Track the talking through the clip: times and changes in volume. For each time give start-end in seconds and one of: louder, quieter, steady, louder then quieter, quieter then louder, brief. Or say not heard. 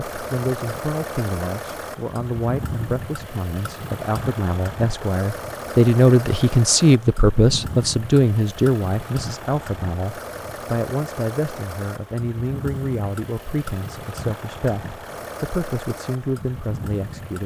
0.1-17.4 louder then quieter.